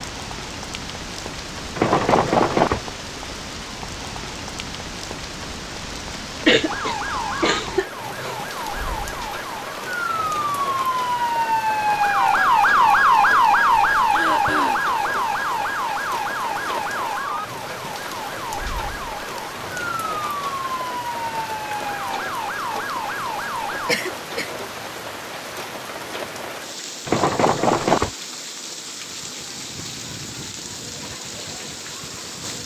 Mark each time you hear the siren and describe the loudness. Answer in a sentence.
The siren can be heard from 6.7 to 23.9 s, getting louder then quieter.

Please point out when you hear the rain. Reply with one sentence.
The rain can be heard from 0.0 to 32.6 s.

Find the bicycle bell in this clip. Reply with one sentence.
The bicycle bell can be heard from 1.8 to 2.8 s and from 27.1 to 28.1 s.